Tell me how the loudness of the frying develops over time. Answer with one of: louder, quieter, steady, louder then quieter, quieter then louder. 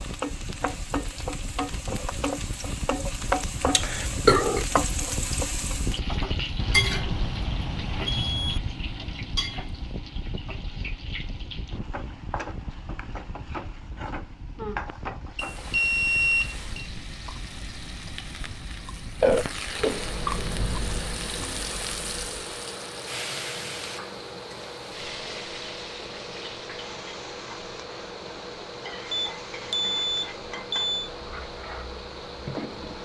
quieter.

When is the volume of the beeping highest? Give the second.
16 s.